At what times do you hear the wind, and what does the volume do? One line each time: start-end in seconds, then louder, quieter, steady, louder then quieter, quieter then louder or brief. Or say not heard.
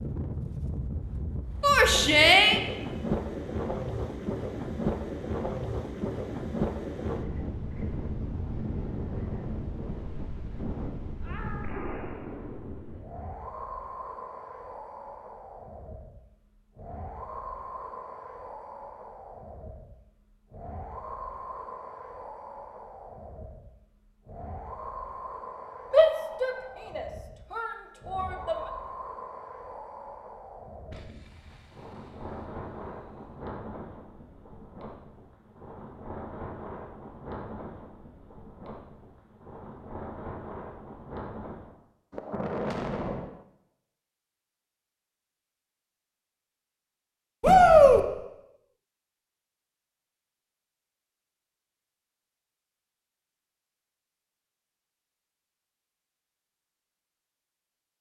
0.0-41.8 quieter.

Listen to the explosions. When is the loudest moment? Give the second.
43 s.